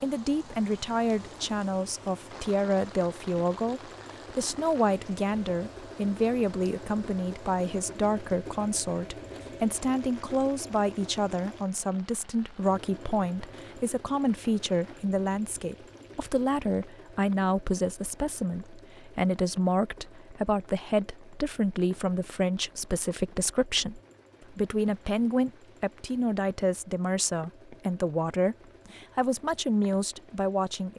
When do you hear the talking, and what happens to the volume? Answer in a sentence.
You can hear the talking from 0.0 to 30.9 s, at a steady volume.